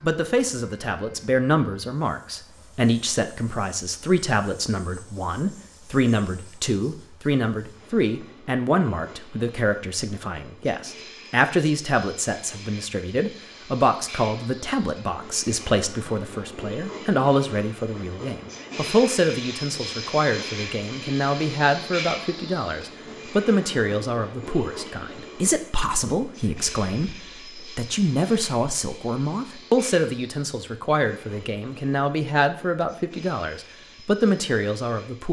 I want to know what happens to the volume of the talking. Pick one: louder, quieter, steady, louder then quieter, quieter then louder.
steady.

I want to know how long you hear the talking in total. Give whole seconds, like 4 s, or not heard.
35 s.